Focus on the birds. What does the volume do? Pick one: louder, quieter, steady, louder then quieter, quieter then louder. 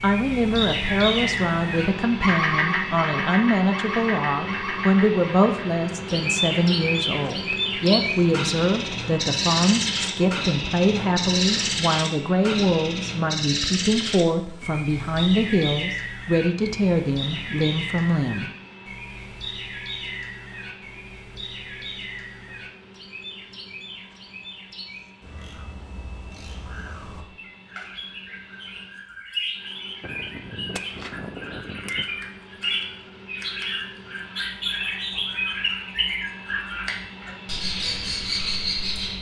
quieter then louder.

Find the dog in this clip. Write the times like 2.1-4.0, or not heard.
not heard.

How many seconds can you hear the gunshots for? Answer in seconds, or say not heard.
2 s.